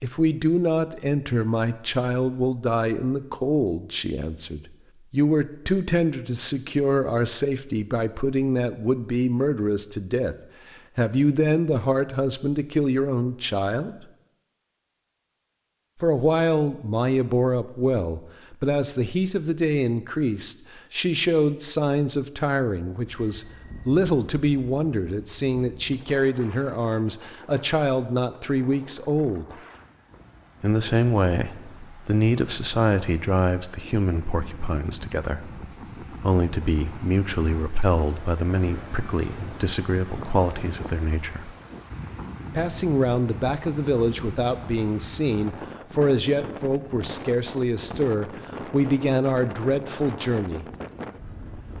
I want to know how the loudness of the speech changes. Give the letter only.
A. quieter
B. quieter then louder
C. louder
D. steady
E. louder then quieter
D.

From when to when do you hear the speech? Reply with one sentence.
The speech can be heard from 0.0 to 10.3 s, from 10.9 to 13.9 s, from 16.0 to 29.6 s, from 30.6 to 41.5 s and from 42.5 to 50.6 s.